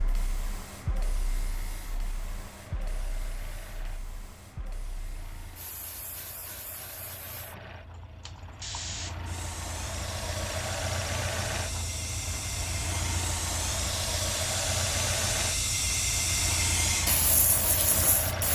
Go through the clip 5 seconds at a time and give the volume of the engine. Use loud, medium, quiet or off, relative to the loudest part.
quiet, medium, loud, loud.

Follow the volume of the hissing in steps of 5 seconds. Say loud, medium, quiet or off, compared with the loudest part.
quiet, quiet, medium, loud.